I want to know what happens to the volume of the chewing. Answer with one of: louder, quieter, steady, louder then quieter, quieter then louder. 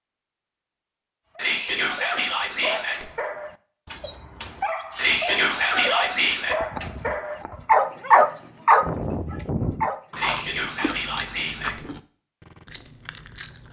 louder then quieter.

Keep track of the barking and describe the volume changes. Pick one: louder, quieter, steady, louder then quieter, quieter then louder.
louder.